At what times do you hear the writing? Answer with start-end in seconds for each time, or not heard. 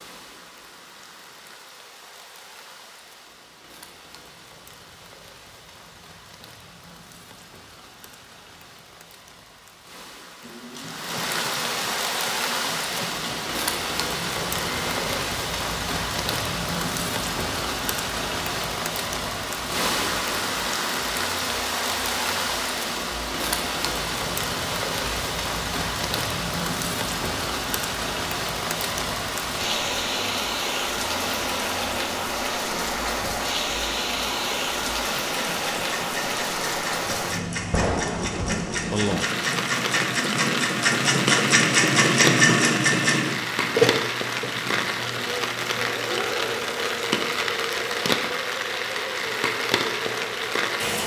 not heard.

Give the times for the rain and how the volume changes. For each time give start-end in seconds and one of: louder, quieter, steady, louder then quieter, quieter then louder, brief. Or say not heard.
0.0-51.0 louder.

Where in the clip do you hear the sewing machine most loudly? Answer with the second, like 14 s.
42 s.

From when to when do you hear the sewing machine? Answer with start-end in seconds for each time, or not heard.
10.4-51.0.